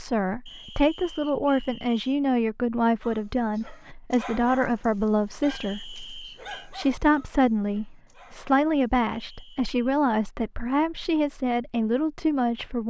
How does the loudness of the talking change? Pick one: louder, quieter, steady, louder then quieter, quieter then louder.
steady.